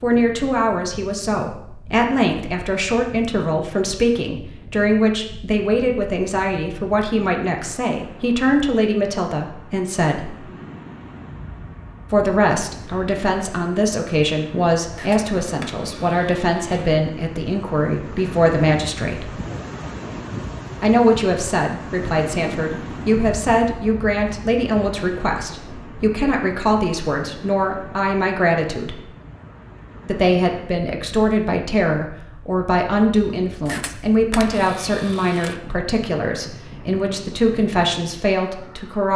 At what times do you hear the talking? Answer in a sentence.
You can hear the talking from 0.0 to 10.4 s, from 12.1 to 19.3 s, from 20.8 to 29.0 s and from 30.1 to 39.1 s.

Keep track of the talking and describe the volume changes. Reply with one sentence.
The loudness of the talking stays about the same.